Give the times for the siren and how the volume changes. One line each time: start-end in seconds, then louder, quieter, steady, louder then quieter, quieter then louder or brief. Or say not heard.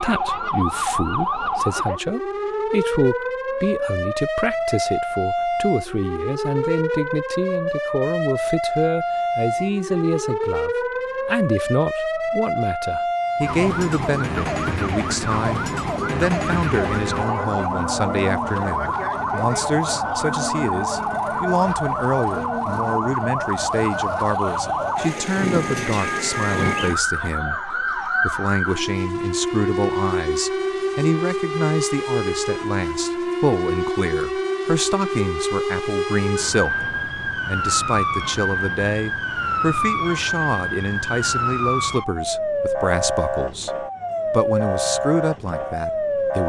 0.0-46.4 steady.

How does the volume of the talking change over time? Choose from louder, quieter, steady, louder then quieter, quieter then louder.
steady.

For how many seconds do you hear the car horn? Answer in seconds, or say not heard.
2 s.